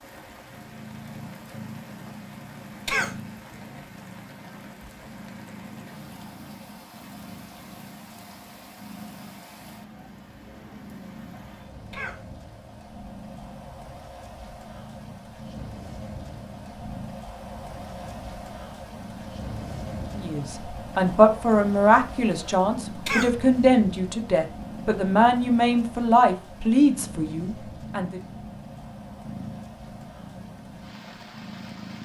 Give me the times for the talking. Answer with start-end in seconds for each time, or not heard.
20.1-28.2.